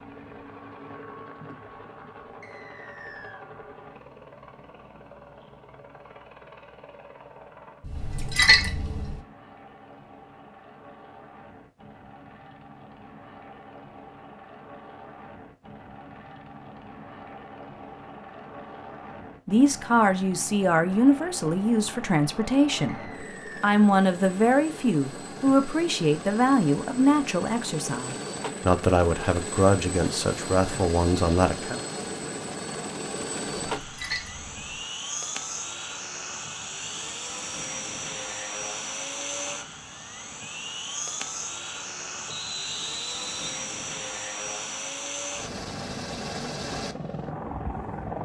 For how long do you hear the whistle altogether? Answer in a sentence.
You can hear the whistle for 3 seconds altogether.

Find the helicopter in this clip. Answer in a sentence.
You can hear the helicopter from 0.0 to 48.1 s.